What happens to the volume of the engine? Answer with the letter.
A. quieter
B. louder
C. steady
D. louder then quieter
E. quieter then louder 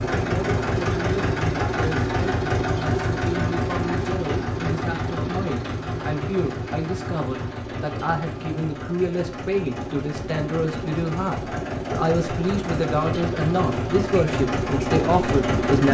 E.